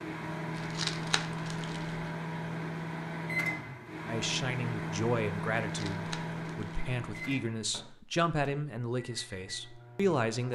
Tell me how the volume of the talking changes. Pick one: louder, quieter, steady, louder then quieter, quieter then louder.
quieter then louder.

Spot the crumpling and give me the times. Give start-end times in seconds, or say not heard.
0.6-2.1, 5.7-7.5.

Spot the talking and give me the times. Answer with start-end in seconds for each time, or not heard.
4.0-10.5.